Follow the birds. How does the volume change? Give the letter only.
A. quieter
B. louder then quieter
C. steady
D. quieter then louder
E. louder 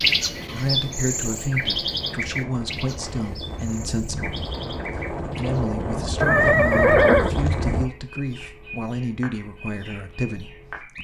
A.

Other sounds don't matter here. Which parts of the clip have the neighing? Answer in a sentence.
You can hear the neighing from 6.2 to 7.3 s.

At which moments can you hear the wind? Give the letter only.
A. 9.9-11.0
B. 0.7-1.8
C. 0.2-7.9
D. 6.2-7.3
C.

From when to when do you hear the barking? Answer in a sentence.
The barking can't be heard in this clip.